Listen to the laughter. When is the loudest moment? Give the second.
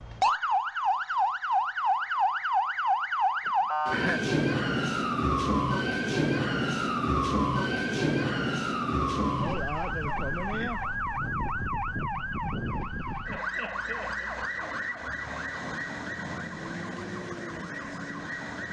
4 s.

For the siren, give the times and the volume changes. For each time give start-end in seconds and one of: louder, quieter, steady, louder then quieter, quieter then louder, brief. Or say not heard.
0.0-18.6 quieter.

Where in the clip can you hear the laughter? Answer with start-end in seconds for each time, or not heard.
3.5-4.2, 9.5-10.8, 13.2-14.7.